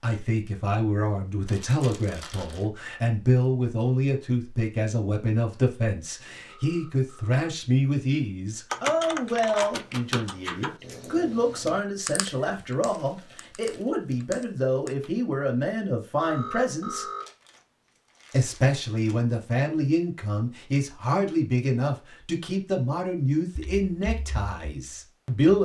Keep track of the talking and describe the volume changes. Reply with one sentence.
The loudness of the talking stays about the same.